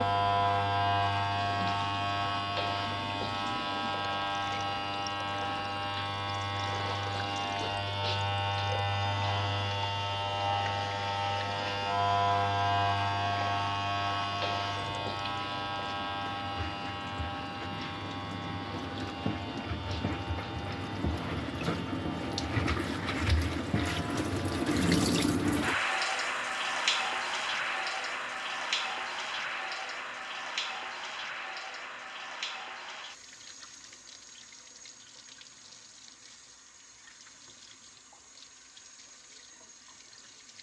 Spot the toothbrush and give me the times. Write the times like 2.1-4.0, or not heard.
not heard.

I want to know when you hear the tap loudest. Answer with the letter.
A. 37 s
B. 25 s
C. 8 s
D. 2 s
B.